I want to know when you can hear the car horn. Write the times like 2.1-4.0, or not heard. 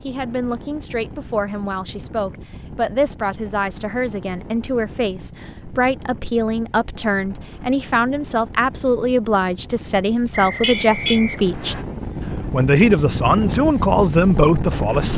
10.6-11.2.